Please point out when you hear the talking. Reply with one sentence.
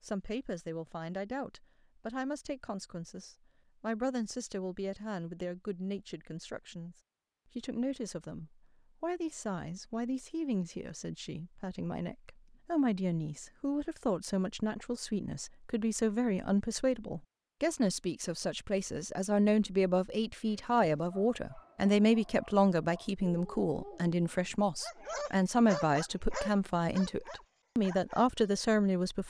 You can hear the talking from 0.0 to 7.0 s and from 7.5 to 29.2 s.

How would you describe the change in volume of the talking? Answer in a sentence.
The volume of the talking goes up.